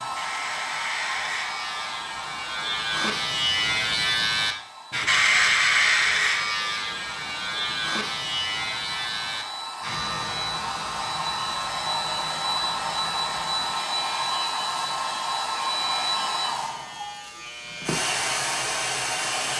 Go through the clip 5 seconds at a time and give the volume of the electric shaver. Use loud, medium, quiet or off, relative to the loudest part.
loud, loud, quiet, quiet.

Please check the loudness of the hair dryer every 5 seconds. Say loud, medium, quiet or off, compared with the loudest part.
medium, medium, loud, loud.